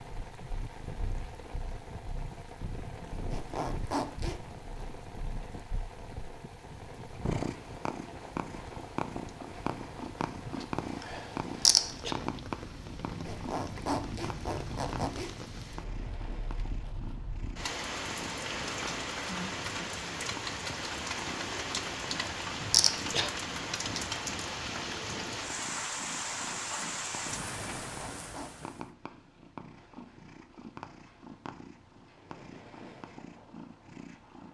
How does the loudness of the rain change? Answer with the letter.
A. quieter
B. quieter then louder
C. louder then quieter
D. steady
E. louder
E.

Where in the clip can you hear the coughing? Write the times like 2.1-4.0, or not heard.
11.0-12.2, 22.1-23.3.